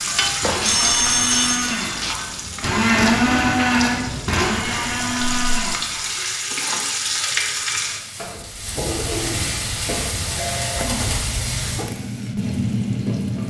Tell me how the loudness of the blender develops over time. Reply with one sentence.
The loudness of the blender goes up, then down.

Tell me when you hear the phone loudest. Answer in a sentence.
The loudest moment of the phone is at 1 second.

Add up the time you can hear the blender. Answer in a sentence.
The blender can be heard for 6 seconds in total.